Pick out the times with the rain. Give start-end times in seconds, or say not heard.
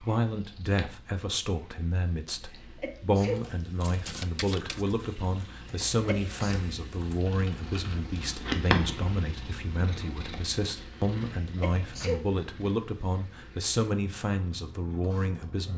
not heard.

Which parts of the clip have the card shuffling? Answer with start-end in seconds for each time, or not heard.
3.8-4.8.